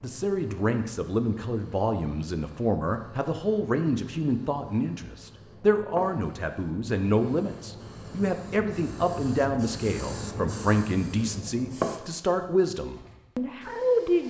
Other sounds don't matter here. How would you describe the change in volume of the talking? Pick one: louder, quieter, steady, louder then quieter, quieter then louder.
steady.